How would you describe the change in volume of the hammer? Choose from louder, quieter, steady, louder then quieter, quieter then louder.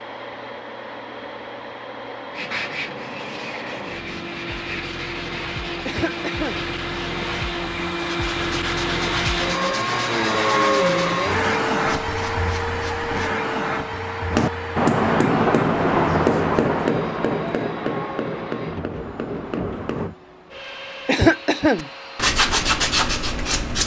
quieter.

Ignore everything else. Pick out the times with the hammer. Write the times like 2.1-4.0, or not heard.
14.3-20.1.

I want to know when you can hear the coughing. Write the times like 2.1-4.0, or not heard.
5.8-6.6, 21.1-21.9.